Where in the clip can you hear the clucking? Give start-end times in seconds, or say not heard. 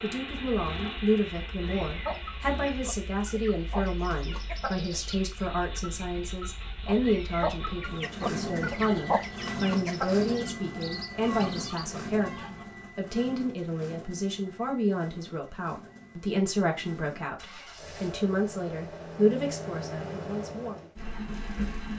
1.6-12.7.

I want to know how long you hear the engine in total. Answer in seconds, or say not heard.
22 s.